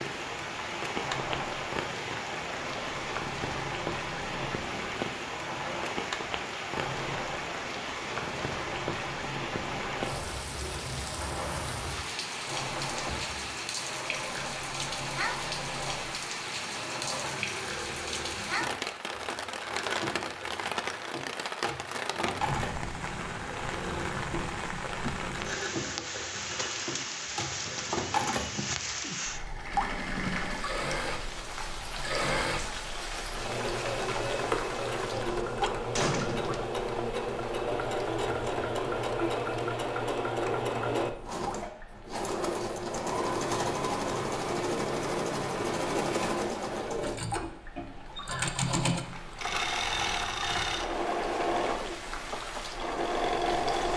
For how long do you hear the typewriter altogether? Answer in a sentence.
The typewriter can't be heard in this clip.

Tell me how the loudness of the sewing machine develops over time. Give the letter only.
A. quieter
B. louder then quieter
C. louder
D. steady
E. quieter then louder
C.